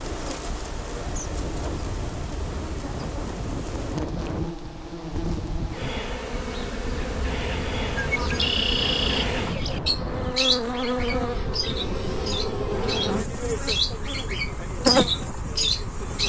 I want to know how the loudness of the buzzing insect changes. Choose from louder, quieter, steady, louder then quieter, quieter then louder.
louder.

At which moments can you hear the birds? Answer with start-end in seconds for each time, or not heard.
8.0-16.2.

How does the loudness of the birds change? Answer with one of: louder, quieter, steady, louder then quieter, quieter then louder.
quieter then louder.